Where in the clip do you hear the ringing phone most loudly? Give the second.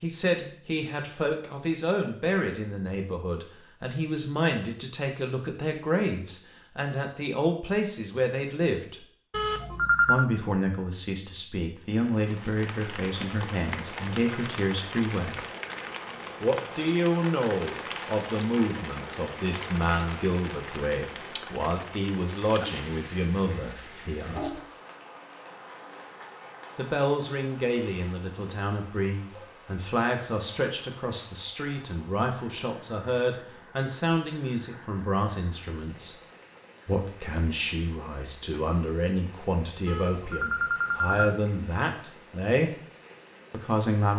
10 s.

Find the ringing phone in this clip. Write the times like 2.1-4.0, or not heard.
9.3-10.2, 39.9-41.4.